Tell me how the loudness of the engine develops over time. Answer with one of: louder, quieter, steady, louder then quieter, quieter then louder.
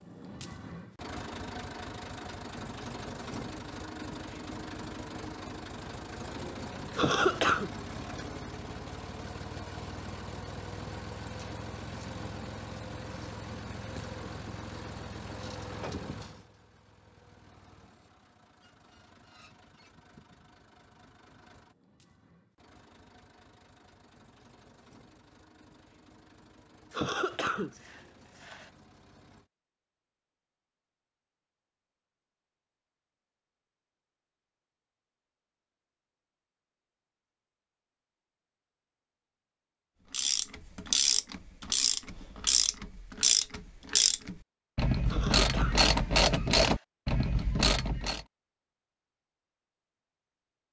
quieter.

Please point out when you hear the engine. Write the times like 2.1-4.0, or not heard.
0.0-29.5.